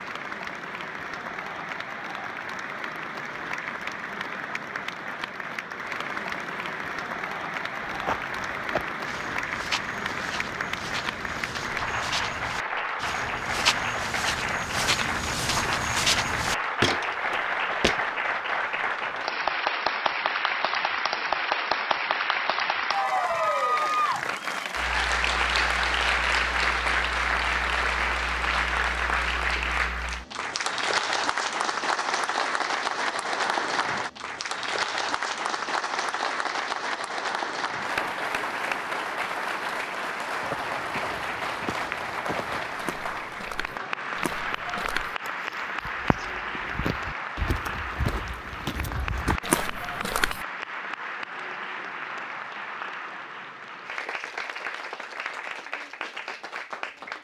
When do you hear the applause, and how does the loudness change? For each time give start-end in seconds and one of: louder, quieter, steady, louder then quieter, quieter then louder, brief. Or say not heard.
0.0-57.1 louder then quieter.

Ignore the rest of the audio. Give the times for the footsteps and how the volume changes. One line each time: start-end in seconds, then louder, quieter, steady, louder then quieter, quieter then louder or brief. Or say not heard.
7.8-18.0 louder
40.4-50.5 louder.